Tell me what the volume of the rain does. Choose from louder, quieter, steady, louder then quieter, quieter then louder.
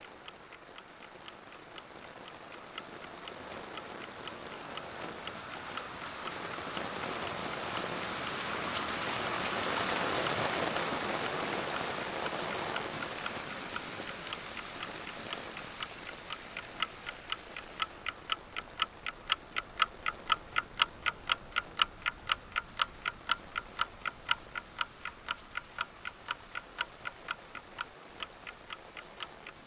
louder then quieter.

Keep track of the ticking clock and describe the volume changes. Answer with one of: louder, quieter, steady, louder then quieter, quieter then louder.
louder then quieter.